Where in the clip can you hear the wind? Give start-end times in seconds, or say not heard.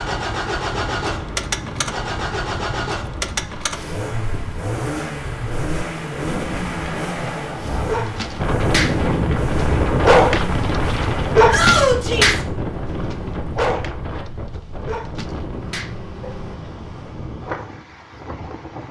0.0-18.8.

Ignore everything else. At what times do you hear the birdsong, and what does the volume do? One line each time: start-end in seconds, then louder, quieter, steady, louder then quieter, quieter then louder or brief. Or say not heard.
not heard.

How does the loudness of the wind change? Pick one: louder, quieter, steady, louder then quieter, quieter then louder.
louder then quieter.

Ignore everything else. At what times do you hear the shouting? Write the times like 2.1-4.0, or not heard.
11.4-12.4.